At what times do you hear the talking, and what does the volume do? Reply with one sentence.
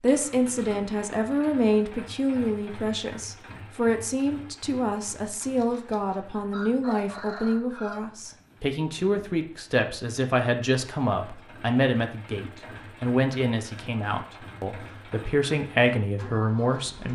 The talking can be heard from 0.0 to 17.1 s, at a steady volume.